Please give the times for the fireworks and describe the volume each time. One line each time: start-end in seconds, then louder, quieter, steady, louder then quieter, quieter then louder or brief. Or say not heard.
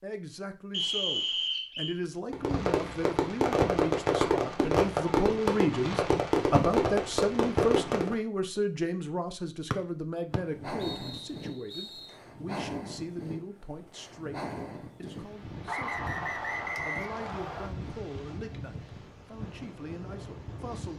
2.3-8.2 steady.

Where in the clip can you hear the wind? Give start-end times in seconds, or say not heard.
10.4-20.9.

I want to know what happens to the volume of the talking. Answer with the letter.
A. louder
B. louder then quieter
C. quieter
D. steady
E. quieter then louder
B.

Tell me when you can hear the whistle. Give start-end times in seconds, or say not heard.
0.7-2.0, 9.7-12.1, 15.7-17.7.